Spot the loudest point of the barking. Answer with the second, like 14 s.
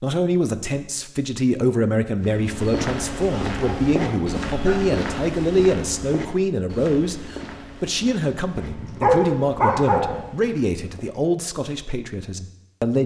9 s.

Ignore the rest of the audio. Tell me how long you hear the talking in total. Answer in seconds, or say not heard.
13 s.